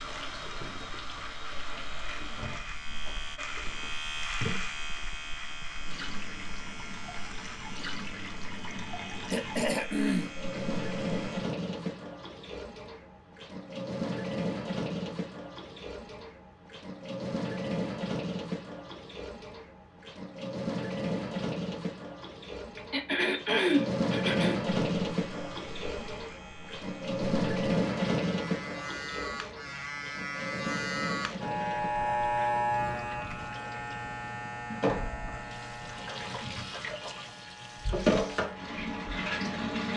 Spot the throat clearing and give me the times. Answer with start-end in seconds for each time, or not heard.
9.3-10.3, 22.8-24.6.